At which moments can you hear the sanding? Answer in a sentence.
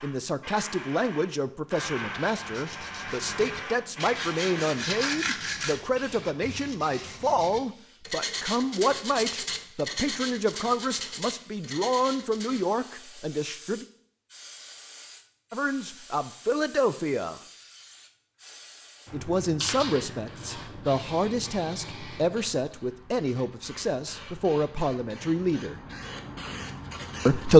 The sanding can be heard from 1.9 to 12.7 s.